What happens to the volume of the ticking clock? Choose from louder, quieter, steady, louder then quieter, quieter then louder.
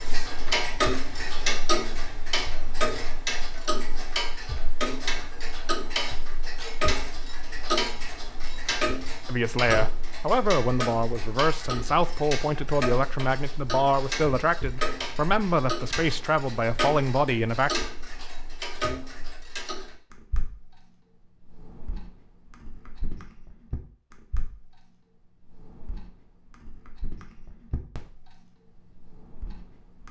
quieter.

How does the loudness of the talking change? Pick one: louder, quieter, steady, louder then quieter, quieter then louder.
steady.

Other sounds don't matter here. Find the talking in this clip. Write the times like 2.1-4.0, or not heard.
9.2-17.7.